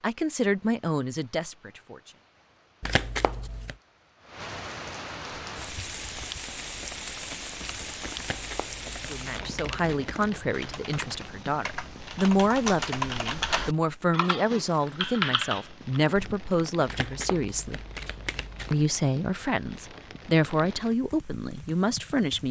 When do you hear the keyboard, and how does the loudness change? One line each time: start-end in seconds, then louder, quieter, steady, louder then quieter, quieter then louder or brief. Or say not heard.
5.5-16.4 louder.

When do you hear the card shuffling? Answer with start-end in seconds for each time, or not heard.
2.8-3.8, 8.2-9.8, 16.9-18.8.